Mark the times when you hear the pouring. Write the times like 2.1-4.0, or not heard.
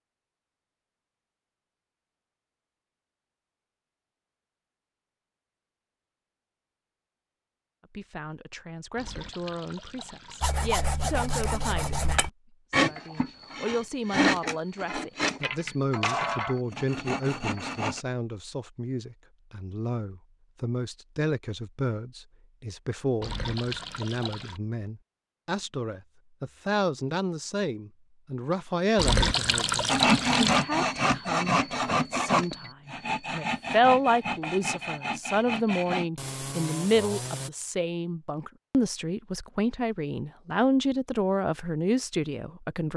8.9-10.6, 23.2-24.6, 28.9-30.6.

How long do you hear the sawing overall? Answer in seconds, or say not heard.
15 s.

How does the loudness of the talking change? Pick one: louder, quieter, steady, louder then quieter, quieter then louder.
louder.